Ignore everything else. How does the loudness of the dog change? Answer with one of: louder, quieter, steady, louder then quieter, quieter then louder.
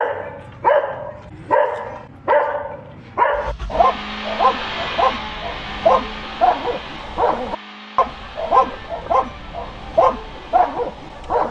steady.